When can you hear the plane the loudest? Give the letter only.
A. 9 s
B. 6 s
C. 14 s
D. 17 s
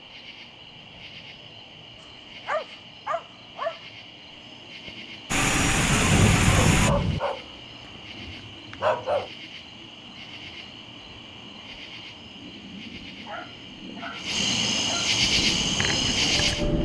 B.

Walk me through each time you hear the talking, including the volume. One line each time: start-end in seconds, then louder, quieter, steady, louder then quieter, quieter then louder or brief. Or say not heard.
not heard.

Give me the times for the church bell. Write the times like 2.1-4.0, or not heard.
not heard.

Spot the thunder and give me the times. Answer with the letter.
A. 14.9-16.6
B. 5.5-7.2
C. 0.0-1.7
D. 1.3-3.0
B.